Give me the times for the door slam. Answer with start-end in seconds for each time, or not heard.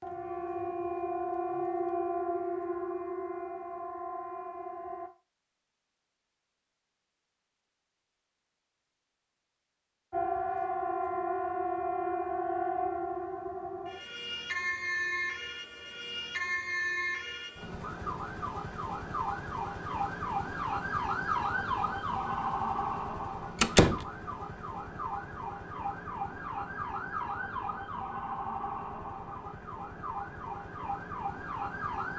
23.6-24.1.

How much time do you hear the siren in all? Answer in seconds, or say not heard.
27 s.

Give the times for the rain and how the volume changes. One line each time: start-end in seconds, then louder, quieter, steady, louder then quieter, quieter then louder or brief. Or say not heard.
not heard.